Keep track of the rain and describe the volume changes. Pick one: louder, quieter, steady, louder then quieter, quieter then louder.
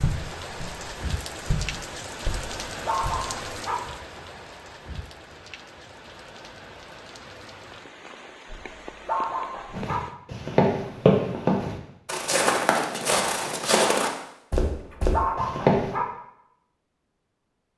quieter.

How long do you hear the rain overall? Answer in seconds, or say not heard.
10 s.